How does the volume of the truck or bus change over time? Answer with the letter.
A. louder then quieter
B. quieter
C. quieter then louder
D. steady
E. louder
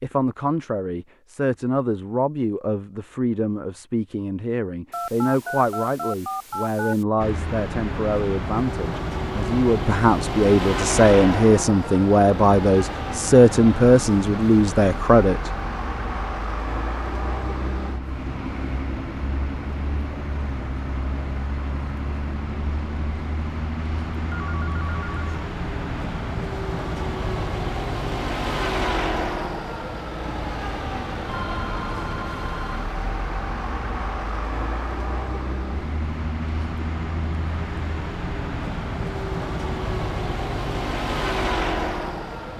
D.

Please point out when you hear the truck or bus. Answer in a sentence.
You can hear the truck or bus from 7.2 to 42.5 s.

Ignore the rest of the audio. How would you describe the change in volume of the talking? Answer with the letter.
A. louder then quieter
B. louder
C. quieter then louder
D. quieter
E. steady
B.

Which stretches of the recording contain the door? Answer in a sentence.
You can't hear the door here.